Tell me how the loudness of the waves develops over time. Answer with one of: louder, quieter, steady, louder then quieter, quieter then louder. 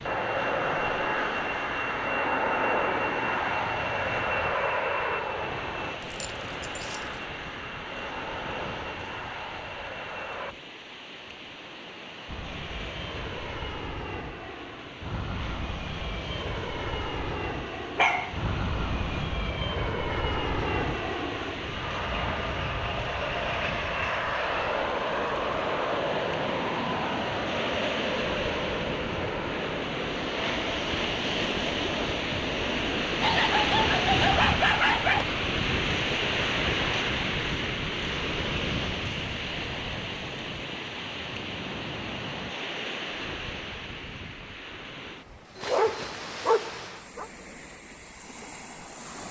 louder then quieter.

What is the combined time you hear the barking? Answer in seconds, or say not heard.
5 s.